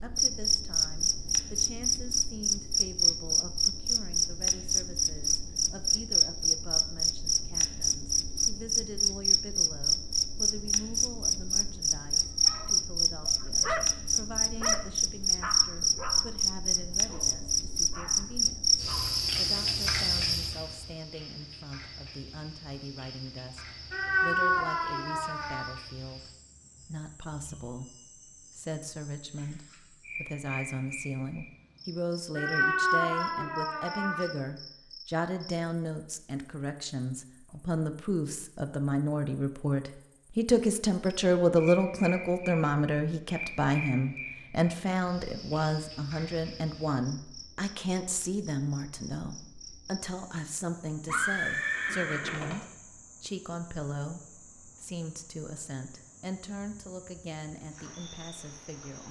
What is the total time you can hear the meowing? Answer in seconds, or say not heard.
4 s.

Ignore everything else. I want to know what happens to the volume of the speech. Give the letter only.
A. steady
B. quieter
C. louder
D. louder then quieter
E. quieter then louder
D.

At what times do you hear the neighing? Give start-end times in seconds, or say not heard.
51.0-52.5.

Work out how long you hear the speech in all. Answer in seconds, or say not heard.
59 s.